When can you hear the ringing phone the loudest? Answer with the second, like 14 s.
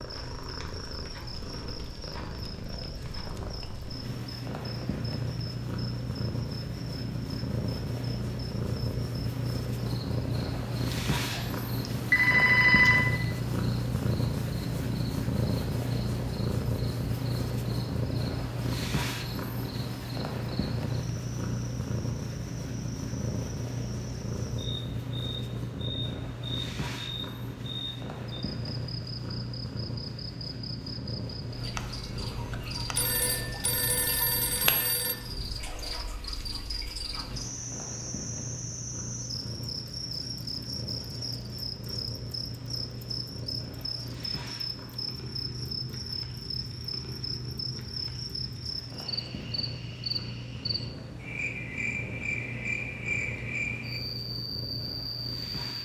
13 s.